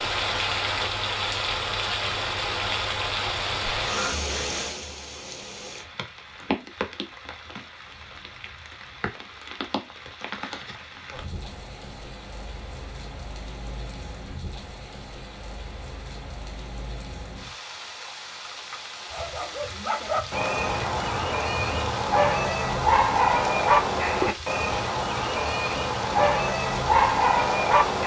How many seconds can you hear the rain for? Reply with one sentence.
You can hear the rain for 28 seconds altogether.